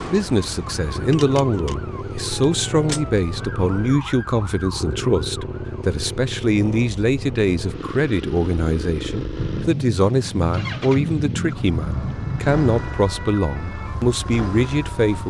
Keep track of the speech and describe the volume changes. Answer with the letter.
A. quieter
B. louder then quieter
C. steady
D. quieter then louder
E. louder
C.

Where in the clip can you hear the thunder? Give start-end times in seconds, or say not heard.
9.3-13.1.